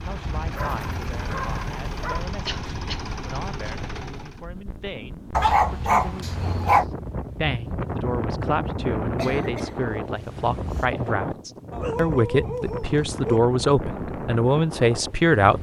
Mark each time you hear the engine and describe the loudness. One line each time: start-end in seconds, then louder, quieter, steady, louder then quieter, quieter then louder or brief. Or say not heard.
0.0-4.5 steady.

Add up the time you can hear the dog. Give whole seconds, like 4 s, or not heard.
5 s.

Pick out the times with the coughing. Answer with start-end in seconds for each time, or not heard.
2.5-3.1, 9.2-10.8.